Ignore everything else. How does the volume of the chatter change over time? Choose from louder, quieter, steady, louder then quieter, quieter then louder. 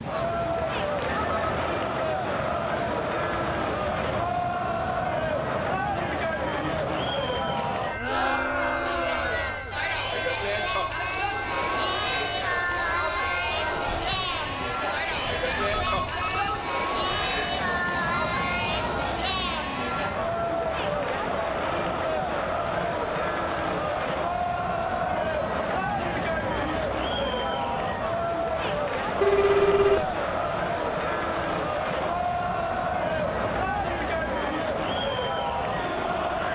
steady.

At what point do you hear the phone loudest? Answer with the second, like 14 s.
30 s.